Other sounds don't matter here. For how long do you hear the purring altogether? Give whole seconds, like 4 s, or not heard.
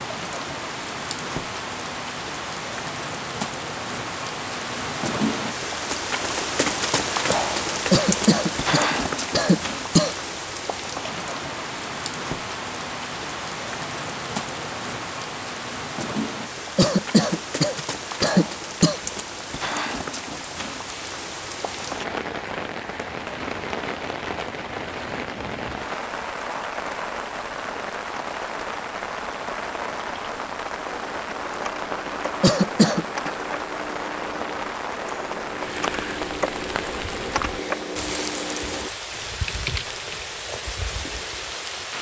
not heard.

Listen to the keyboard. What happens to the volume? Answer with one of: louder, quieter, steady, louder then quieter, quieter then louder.
louder.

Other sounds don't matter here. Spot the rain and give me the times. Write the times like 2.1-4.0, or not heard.
0.0-41.9.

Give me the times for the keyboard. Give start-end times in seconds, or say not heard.
30.0-40.2.